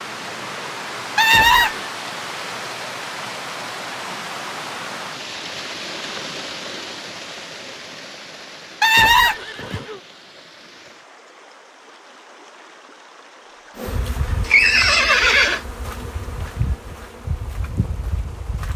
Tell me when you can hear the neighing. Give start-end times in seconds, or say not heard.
1.1-1.9, 8.8-10.0, 14.4-15.6.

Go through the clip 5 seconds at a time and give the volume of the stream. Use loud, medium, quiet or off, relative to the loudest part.
loud, loud, quiet, quiet.